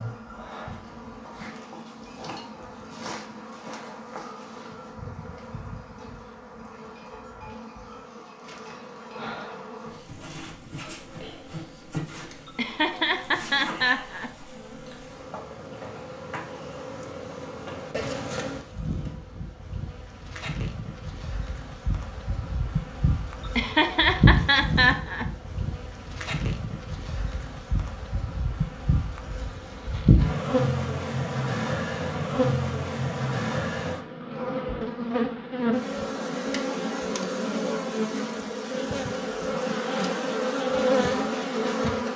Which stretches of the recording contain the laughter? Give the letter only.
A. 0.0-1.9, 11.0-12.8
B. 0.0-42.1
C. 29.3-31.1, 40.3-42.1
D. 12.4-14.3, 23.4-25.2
D.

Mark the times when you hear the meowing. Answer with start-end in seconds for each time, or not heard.
not heard.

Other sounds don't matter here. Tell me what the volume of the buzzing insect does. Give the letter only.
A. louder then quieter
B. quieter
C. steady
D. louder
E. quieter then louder
D.